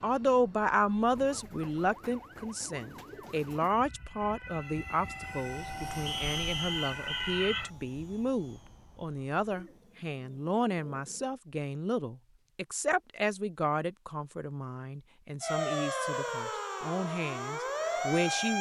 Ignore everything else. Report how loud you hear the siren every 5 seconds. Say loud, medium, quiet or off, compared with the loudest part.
quiet, medium, off, loud.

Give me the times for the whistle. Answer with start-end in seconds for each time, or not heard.
6.0-7.7.